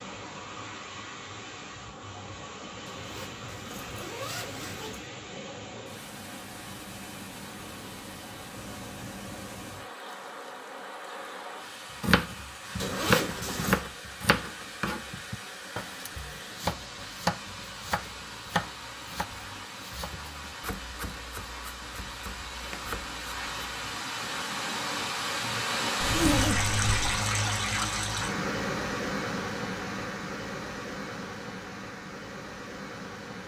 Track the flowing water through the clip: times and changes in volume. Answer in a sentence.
You can hear the flowing water from 0.0 to 33.4 s, getting louder.